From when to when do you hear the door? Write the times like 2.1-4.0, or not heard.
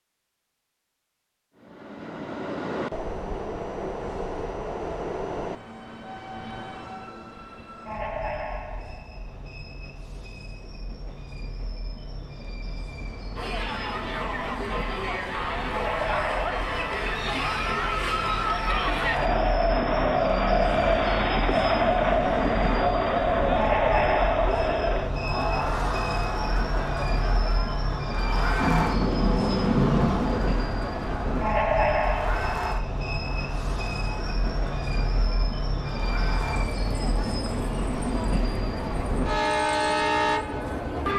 28.6-30.7.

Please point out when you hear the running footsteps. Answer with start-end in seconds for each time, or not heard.
not heard.